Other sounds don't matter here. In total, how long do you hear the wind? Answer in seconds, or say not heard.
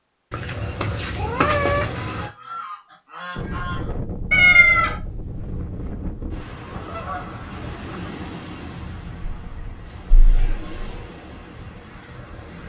9 s.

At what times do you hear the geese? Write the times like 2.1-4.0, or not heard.
1.9-4.0, 6.7-8.4.